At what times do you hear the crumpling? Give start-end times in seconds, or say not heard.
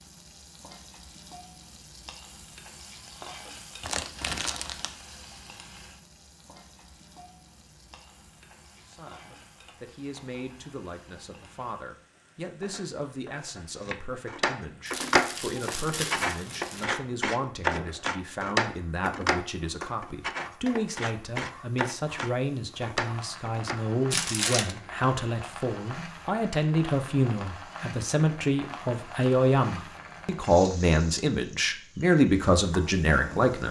3.8-4.9, 14.8-16.9, 24.1-24.8.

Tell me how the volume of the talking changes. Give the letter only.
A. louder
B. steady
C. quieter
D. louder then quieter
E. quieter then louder
A.